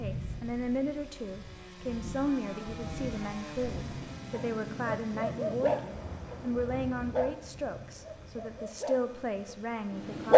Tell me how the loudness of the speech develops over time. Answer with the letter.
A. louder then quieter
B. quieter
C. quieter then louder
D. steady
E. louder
D.